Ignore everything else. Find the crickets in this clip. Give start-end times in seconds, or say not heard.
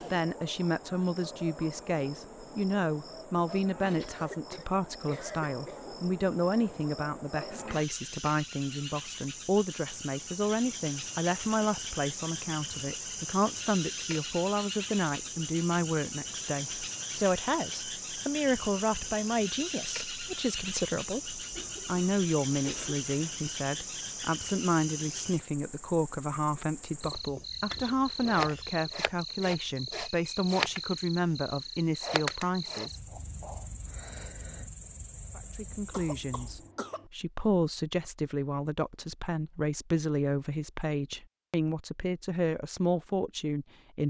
0.0-36.7.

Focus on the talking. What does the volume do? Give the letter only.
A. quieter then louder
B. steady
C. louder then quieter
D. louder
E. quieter
B.